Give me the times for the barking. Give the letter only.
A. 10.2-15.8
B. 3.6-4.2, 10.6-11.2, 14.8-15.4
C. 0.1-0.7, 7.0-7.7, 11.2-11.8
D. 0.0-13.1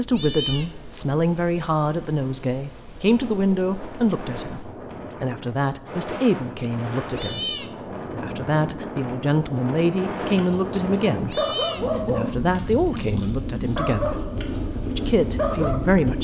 A.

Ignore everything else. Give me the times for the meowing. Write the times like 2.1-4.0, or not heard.
0.1-0.7, 7.0-7.7, 11.2-11.8.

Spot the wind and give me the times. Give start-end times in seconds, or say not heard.
3.0-16.1.